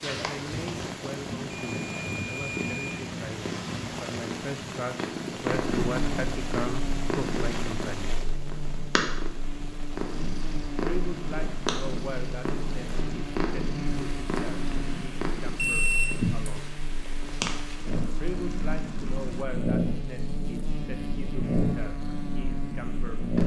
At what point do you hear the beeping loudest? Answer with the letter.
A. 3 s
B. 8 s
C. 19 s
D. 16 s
D.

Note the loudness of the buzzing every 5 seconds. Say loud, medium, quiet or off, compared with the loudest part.
off, loud, loud, loud, loud.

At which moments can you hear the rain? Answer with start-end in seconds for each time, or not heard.
0.0-19.4.